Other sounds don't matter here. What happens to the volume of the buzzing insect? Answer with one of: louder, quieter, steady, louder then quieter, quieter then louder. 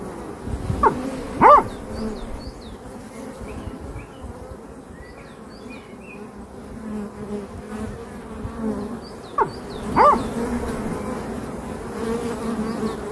quieter then louder.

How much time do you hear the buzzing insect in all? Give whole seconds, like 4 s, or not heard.
13 s.